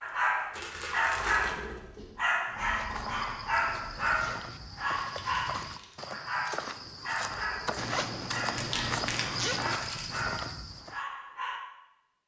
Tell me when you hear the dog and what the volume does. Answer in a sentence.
You can hear the dog from 0.0 to 11.6 s, getting quieter.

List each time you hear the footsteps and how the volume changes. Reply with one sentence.
The footsteps can be heard from 2.8 to 11.0 s, getting louder.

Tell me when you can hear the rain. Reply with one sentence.
You can't hear the rain here.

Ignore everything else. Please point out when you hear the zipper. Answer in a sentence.
You can hear the zipper from 2.5 to 4.6 s and from 7.8 to 9.8 s.